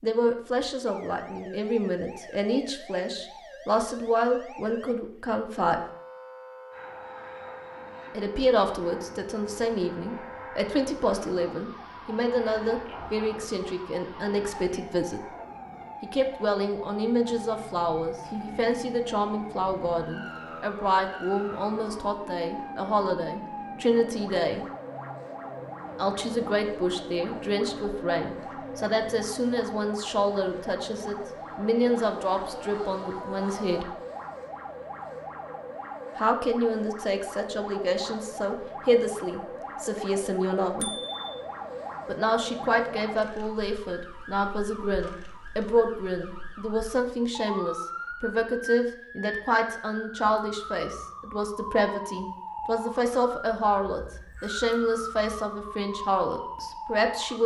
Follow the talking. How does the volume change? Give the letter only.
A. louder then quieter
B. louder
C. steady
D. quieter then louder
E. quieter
C.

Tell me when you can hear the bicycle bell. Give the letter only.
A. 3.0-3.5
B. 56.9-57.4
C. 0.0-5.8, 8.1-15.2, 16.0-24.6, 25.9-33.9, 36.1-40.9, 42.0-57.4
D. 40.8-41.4
D.